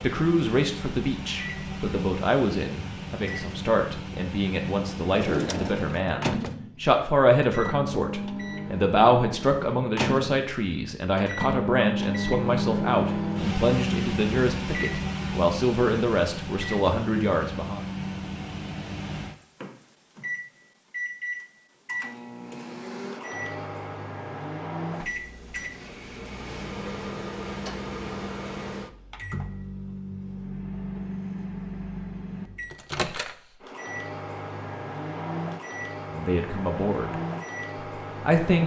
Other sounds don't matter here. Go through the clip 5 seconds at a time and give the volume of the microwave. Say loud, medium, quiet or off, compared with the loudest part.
medium, medium, loud, medium, medium, medium, medium, medium.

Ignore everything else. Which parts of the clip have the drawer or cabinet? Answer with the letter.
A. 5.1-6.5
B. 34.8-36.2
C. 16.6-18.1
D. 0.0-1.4
A.